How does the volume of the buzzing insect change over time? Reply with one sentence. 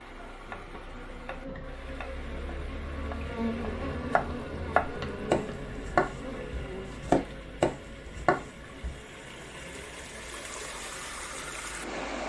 The loudness of the buzzing insect goes up, then down.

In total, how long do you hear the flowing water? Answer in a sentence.
The flowing water can be heard for 12 seconds in total.